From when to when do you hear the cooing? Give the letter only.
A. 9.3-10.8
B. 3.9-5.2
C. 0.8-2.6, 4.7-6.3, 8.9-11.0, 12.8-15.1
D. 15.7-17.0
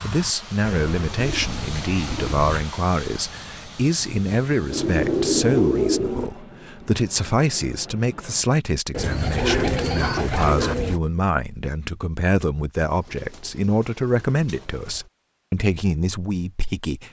C.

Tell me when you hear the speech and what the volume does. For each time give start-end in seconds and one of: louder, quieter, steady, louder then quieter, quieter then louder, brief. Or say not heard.
0.0-17.0 steady.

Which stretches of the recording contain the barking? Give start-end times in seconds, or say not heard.
9.3-10.8.